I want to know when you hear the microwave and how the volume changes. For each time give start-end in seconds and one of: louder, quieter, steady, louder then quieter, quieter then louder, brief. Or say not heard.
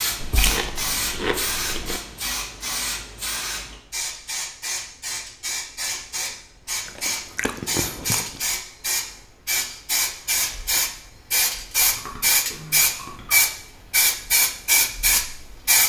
not heard.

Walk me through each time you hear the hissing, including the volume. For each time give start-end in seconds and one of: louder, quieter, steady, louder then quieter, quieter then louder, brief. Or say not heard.
0.0-15.8 louder.